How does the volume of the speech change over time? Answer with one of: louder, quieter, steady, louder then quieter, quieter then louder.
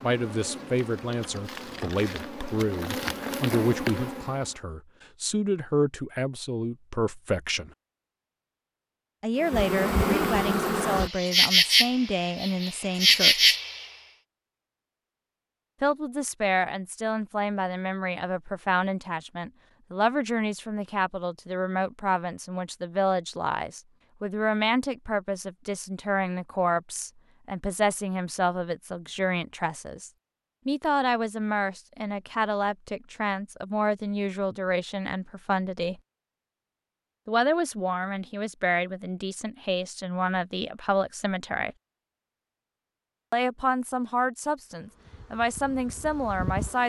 steady.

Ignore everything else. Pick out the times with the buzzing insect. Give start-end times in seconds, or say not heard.
0.0-4.5, 9.4-13.8, 44.8-46.8.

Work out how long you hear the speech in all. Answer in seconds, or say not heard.
40 s.